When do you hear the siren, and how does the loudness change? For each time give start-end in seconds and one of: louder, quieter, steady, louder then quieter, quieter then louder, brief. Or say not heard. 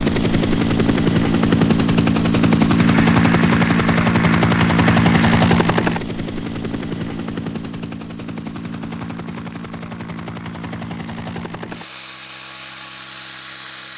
not heard.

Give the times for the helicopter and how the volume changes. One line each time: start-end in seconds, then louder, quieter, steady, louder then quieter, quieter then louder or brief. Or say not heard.
0.0-13.9 quieter.